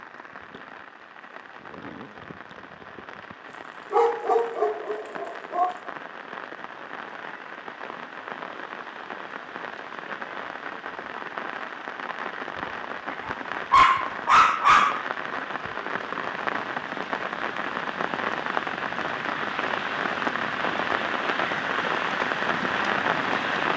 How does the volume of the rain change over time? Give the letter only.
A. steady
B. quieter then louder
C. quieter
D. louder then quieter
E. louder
E.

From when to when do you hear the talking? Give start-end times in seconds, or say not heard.
not heard.